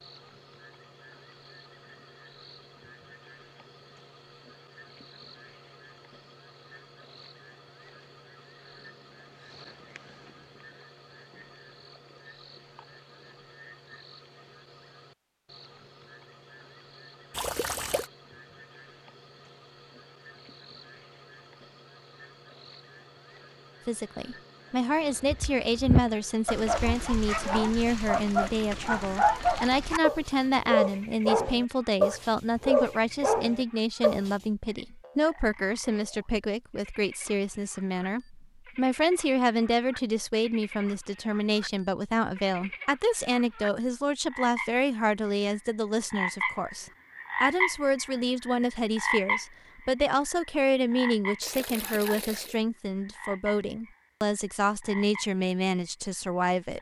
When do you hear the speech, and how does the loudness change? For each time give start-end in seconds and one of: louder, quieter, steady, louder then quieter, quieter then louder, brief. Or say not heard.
23.9-56.7 steady.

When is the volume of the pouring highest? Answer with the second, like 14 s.
18 s.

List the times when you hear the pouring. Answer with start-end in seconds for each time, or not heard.
17.3-18.1, 51.4-52.6.